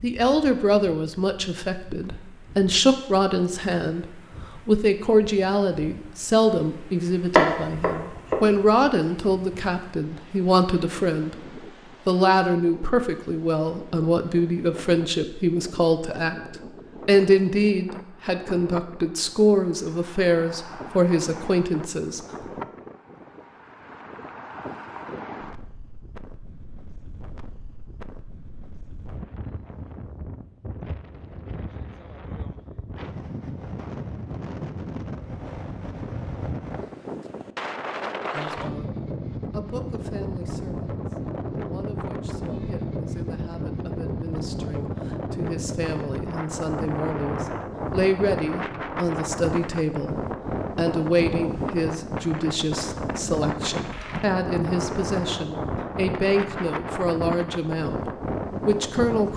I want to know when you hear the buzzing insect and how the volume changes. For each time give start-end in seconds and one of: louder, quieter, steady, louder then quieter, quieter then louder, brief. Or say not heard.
not heard.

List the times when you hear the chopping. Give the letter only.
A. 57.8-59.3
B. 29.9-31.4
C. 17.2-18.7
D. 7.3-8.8
D.